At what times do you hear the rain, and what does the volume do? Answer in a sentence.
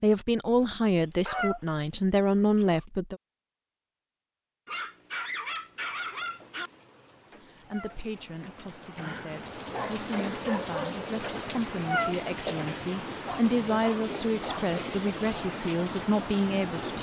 The rain can be heard from 5.9 to 16.9 s, getting louder.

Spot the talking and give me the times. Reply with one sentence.
The talking can be heard from 0.0 to 3.2 s and from 7.4 to 16.9 s.